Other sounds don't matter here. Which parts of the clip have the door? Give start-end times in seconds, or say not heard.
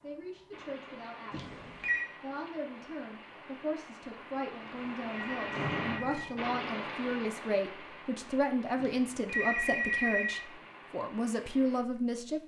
4.8-6.2.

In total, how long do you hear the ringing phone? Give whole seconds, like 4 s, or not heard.
4 s.